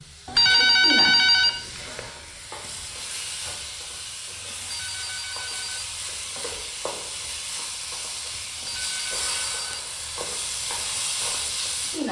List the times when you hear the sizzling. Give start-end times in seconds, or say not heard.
0.0-12.0.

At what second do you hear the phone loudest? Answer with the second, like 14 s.
1 s.